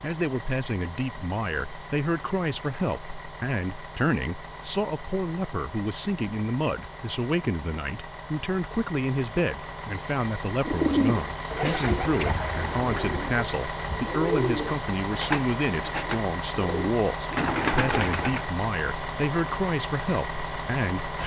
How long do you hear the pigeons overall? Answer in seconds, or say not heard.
8 s.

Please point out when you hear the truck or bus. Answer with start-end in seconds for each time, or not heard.
0.0-21.2.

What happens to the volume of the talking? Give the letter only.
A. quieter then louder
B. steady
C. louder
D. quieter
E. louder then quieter
B.